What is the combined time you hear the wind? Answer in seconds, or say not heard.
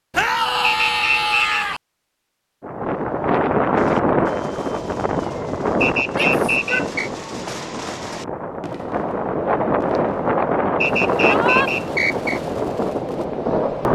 11 s.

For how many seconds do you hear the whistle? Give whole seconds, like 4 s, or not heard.
4 s.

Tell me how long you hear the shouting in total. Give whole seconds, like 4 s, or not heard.
3 s.